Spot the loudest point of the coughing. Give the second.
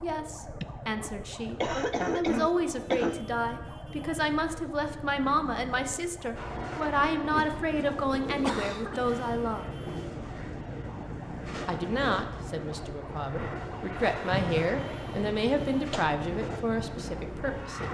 2 s.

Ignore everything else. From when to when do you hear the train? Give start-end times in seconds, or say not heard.
6.3-17.8.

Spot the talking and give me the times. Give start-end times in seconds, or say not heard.
0.0-9.7, 11.7-17.8.